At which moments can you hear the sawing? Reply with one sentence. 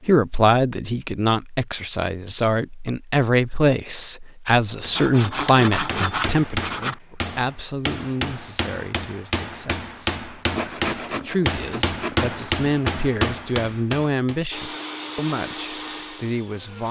The sawing can be heard from 5.0 to 7.0 s and from 10.5 to 12.2 s.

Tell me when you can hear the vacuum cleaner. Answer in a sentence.
The vacuum cleaner can be heard from 14.5 to 16.8 s.